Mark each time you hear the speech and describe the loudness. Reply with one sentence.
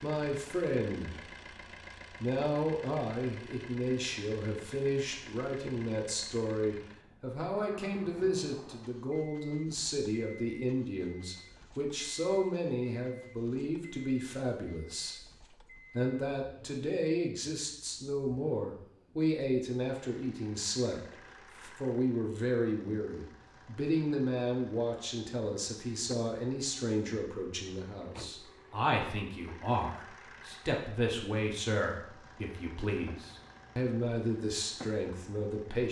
The speech can be heard briefly from 0.0 to 1.3 s; and from 2.1 to 35.8 s, at a steady volume.